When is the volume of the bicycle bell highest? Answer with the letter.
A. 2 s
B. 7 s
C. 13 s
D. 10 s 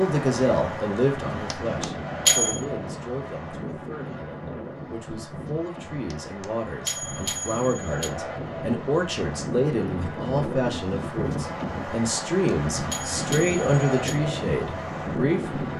A.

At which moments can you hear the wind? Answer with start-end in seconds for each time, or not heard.
0.0-15.7.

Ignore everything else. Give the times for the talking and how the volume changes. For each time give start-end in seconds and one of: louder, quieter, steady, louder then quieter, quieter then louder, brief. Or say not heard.
0.0-15.7 quieter then louder.